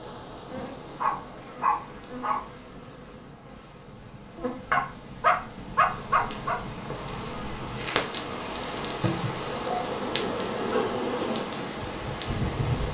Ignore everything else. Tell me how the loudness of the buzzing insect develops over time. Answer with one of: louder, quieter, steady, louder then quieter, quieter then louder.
louder.